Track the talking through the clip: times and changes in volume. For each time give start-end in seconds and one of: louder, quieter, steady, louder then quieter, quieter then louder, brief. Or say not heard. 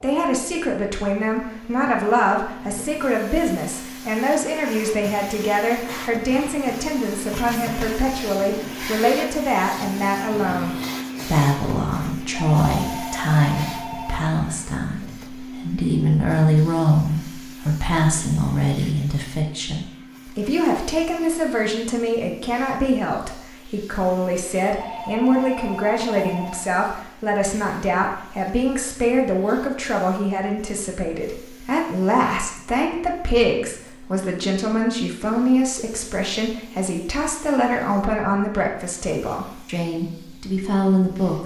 0.0-41.4 steady.